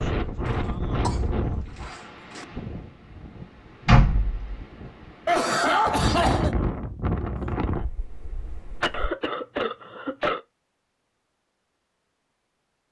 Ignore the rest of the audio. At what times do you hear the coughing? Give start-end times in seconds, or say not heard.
0.5-2.5, 5.2-6.5, 8.8-10.4.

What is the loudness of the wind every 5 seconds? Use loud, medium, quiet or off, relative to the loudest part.
loud, loud, off.